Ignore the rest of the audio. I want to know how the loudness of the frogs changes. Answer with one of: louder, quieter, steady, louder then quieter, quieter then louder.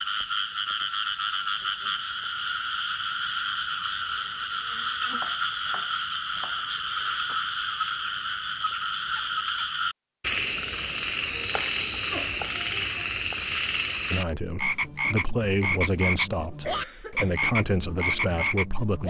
steady.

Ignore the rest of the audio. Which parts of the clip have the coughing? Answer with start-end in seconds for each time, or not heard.
16.6-17.4.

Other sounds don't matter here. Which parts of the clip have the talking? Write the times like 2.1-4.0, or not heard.
14.1-19.0.